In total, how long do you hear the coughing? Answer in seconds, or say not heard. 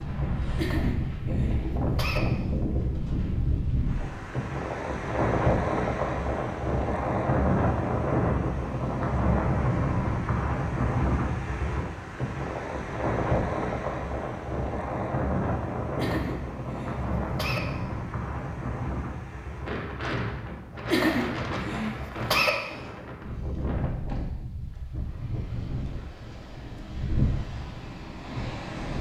5 s.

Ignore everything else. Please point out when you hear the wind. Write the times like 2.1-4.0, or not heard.
0.0-28.9.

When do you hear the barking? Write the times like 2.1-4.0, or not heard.
not heard.